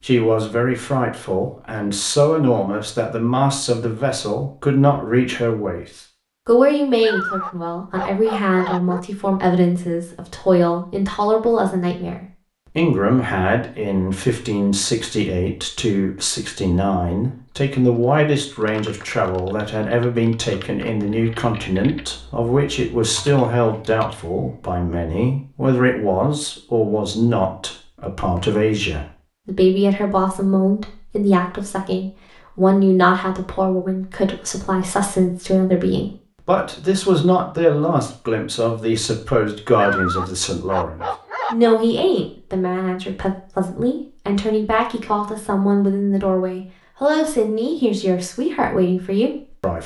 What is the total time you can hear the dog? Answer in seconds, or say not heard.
4 s.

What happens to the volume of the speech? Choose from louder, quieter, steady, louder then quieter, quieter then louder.
steady.